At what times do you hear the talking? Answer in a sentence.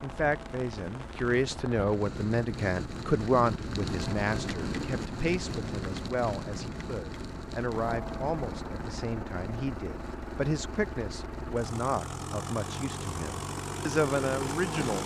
The talking can be heard from 0.0 to 15.0 s.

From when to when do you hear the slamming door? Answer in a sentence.
You can't hear the slamming door here.